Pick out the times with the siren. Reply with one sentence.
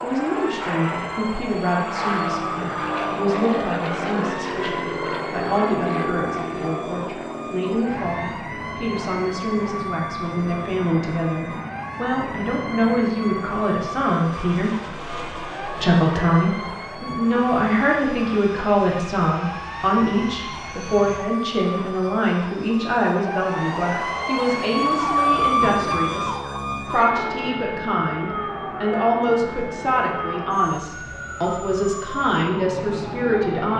You can hear the siren from 0.0 to 33.6 s.